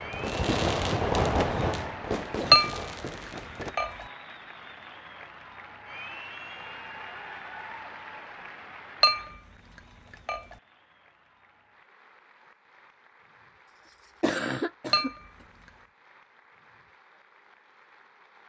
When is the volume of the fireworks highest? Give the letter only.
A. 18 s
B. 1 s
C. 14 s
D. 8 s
B.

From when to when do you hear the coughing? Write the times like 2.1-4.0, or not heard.
0.5-2.8, 13.8-15.1.